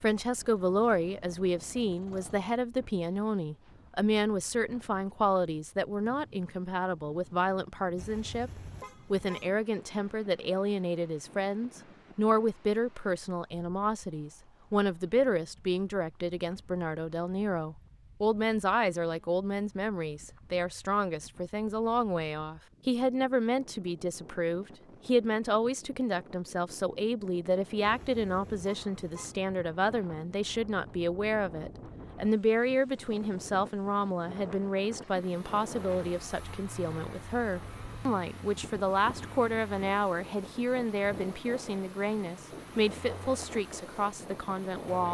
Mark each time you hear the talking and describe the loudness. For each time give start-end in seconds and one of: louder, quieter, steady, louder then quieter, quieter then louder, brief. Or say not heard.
0.0-45.0 steady.